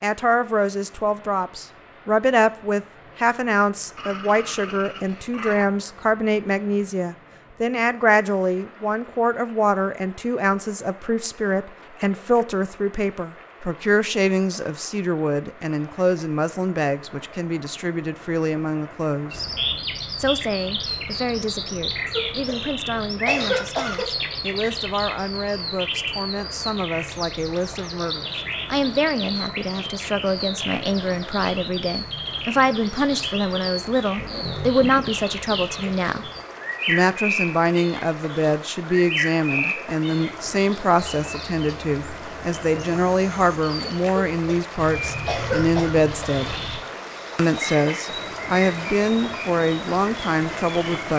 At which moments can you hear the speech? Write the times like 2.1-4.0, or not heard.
0.0-19.4, 20.1-36.2, 36.9-46.5, 47.4-51.1.